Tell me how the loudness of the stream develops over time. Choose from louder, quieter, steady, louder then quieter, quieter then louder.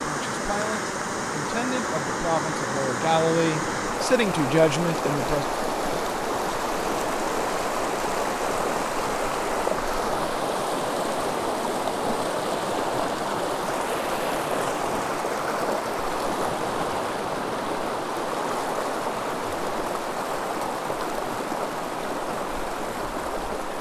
steady.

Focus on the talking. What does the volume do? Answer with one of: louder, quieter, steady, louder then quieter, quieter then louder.
louder.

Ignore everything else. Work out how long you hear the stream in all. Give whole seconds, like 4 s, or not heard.
24 s.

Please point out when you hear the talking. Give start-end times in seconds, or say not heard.
0.0-5.5.